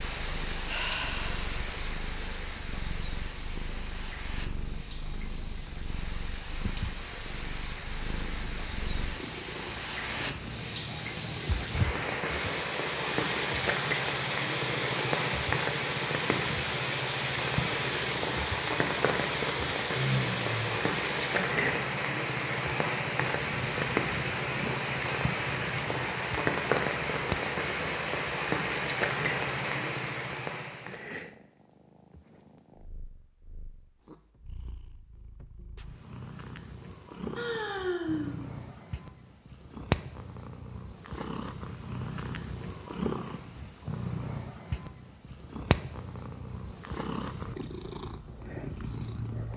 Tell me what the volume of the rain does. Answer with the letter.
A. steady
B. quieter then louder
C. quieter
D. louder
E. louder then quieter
D.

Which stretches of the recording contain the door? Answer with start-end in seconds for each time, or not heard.
not heard.